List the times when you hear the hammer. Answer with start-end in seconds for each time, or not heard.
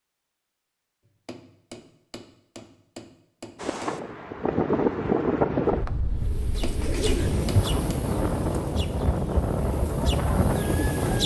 1.1-4.0, 6.4-8.0.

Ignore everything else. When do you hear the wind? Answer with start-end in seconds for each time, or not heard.
3.6-11.2.